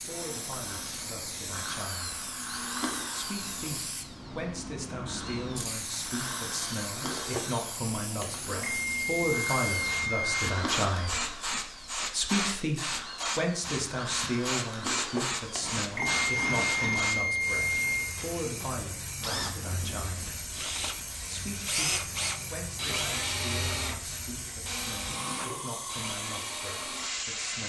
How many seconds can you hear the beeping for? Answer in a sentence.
The beeping can be heard for 5 seconds in total.